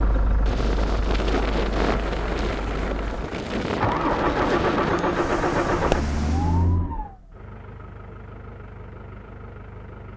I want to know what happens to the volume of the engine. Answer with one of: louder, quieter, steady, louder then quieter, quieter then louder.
louder then quieter.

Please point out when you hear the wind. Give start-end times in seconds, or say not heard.
0.0-6.8.